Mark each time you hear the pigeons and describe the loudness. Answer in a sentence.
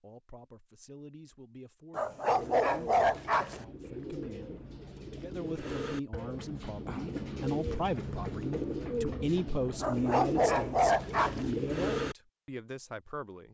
The pigeons can be heard from 2.3 to 12.2 s, getting louder.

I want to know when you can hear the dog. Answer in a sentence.
The dog can be heard from 1.9 to 3.6 s and from 9.8 to 11.5 s.